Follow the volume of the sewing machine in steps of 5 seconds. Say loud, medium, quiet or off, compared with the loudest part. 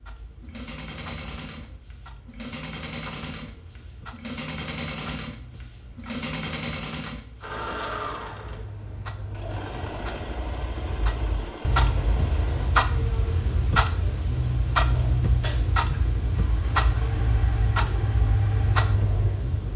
loud, loud, loud, medium.